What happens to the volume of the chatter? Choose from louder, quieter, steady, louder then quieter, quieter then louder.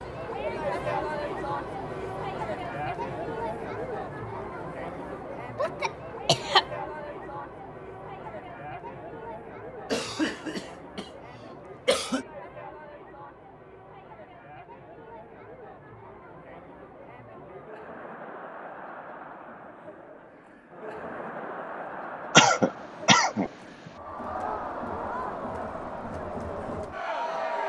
quieter then louder.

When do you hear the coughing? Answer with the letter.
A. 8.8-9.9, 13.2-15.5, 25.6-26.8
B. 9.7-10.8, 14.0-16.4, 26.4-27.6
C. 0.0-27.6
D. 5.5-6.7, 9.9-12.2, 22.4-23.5
D.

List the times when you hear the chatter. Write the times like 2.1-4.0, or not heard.
0.0-27.6.